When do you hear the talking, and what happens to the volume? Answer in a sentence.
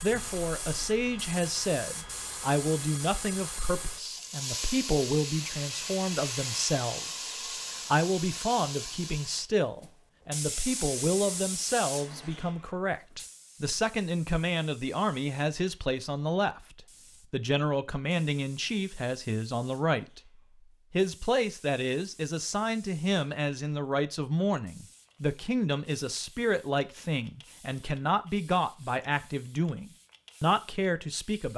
You can hear the talking from 0.0 to 31.5 s, at a steady volume.